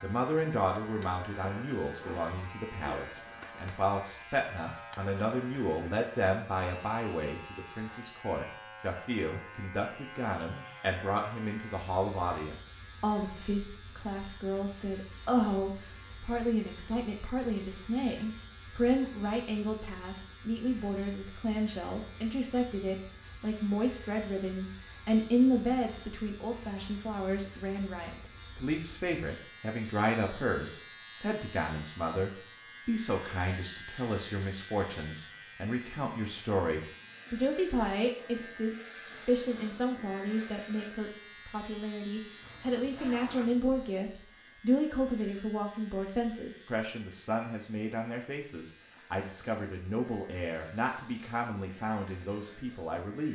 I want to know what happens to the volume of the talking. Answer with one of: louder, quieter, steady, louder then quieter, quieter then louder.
steady.